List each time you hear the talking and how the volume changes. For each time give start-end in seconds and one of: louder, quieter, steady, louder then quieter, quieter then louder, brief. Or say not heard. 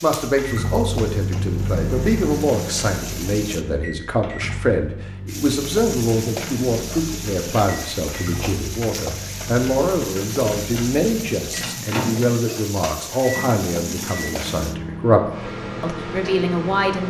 0.0-17.0 steady.